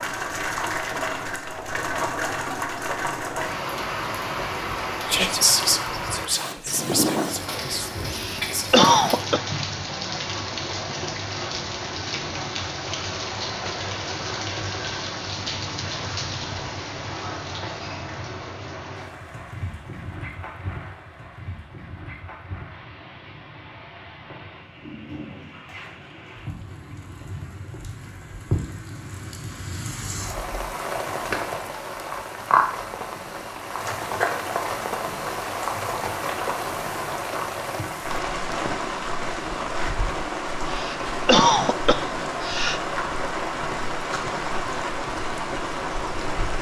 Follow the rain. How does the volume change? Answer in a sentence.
The loudness of the rain goes down, then up.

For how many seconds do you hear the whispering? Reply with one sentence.
You can hear the whispering for 4 seconds altogether.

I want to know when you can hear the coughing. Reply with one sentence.
The coughing can be heard from 8.1 to 9.4 s and from 40.7 to 42.9 s.